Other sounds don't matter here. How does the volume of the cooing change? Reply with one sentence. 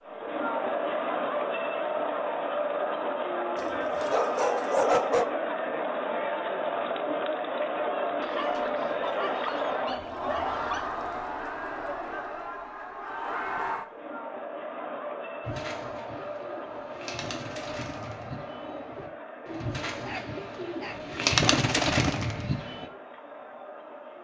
The volume of the cooing goes up.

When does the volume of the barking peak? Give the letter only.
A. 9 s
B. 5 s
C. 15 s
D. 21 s
B.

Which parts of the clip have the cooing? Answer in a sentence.
The cooing can be heard from 15.4 to 22.9 s.